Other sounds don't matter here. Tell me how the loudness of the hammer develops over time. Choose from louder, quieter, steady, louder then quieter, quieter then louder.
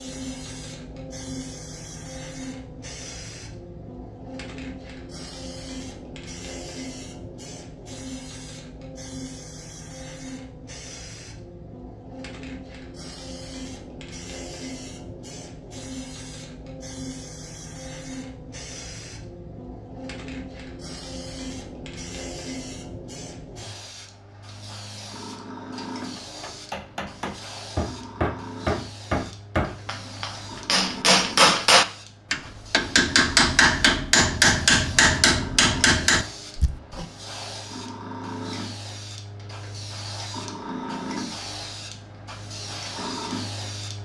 louder.